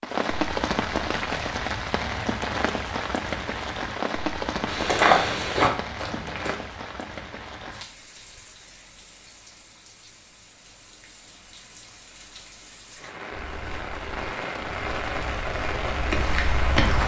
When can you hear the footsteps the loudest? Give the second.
5 s.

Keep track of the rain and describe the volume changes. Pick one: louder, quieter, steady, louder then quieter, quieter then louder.
quieter then louder.